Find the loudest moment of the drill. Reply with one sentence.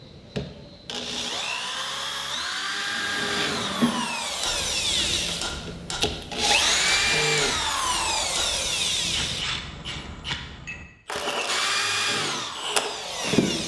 The volume of the drill peaks at 7 seconds.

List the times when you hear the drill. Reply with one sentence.
The drill can be heard from 0.0 to 9.4 s and from 11.4 to 13.6 s.